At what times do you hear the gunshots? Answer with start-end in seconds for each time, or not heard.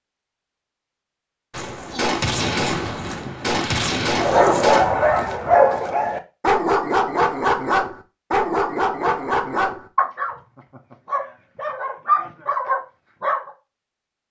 1.5-5.0.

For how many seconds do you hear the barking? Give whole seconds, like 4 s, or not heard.
10 s.